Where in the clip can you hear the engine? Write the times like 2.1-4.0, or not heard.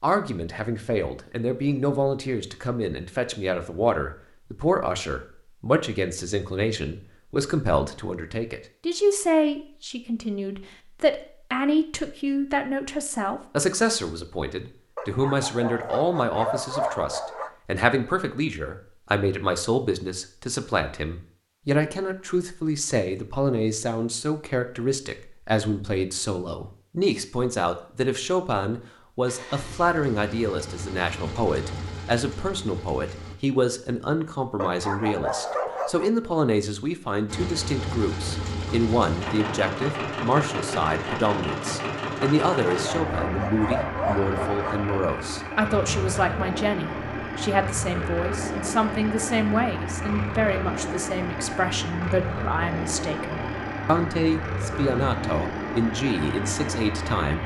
29.2-33.4, 37.2-57.4.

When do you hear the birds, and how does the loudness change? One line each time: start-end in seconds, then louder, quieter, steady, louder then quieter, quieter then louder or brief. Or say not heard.
not heard.